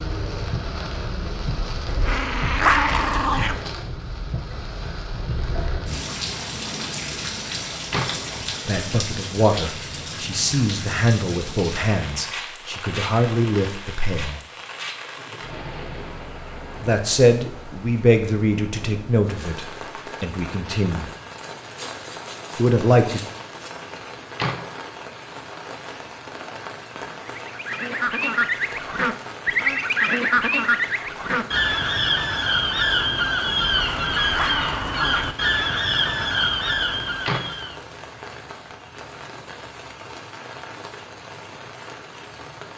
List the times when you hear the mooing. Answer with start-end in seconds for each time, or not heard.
not heard.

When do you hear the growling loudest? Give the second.
3 s.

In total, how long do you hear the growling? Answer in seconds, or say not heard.
3 s.